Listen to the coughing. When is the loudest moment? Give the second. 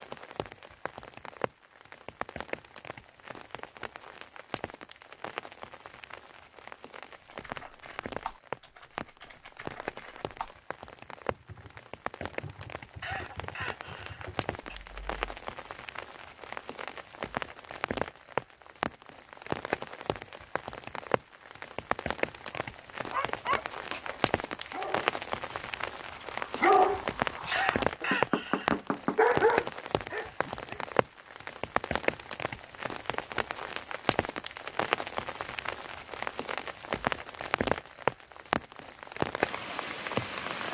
28 s.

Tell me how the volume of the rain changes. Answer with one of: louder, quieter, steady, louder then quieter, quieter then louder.
louder.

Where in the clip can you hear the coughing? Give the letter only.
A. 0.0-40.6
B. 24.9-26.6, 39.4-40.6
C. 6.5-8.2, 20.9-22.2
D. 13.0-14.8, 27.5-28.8
D.